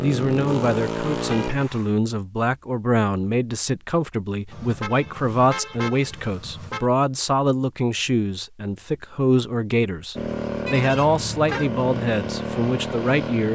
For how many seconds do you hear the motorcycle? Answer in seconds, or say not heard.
5 s.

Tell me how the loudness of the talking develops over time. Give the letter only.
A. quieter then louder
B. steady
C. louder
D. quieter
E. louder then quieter
B.